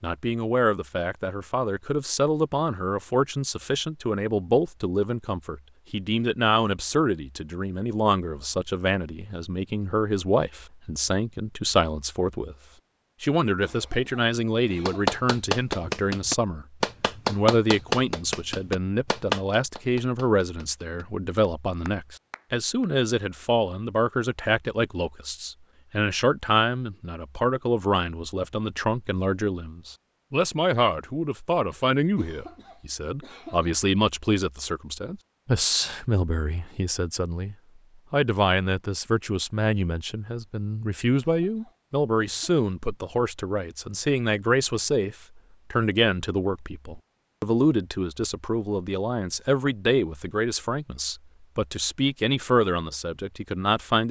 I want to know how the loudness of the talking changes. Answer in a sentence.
The volume of the talking stays about the same.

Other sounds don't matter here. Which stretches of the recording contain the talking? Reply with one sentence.
You can hear the talking from 0.0 to 12.6 s, from 13.2 to 16.6 s and from 17.2 to 54.0 s.